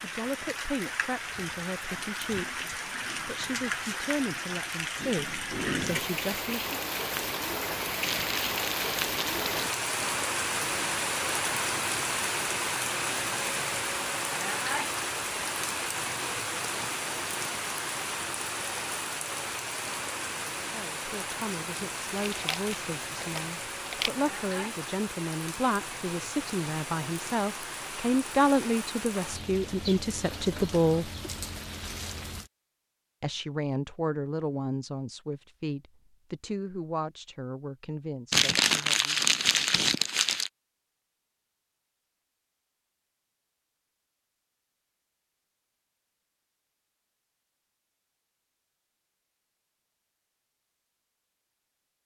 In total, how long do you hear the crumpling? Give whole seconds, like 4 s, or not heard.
6 s.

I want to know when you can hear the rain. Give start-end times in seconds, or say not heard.
0.0-32.5.